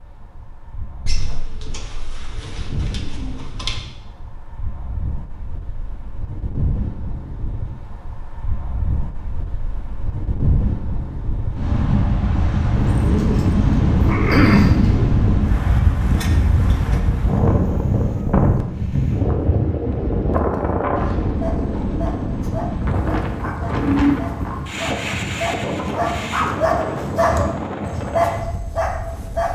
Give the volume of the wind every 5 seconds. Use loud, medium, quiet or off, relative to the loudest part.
quiet, quiet, loud, loud, loud, medium.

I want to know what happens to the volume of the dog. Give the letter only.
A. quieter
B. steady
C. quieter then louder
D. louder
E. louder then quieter
D.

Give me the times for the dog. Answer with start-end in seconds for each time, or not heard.
21.4-29.5.